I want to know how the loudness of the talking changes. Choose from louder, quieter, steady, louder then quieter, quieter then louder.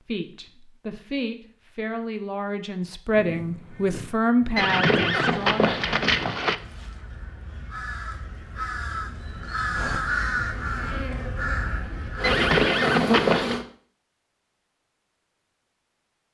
louder.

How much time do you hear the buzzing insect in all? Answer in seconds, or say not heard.
4 s.